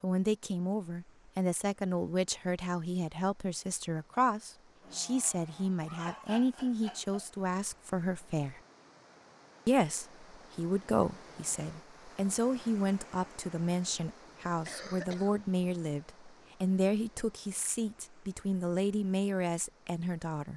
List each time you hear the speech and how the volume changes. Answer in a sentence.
The speech can be heard from 0.0 to 8.6 s, at a steady volume; and from 9.7 to 20.5 s, at a steady volume.